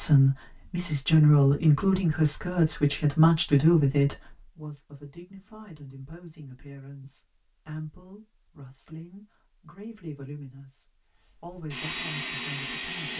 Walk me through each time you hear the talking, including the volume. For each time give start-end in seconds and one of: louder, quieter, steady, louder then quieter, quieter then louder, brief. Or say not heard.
0.0-13.1 quieter.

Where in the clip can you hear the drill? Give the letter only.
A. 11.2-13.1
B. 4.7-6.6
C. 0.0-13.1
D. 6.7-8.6
A.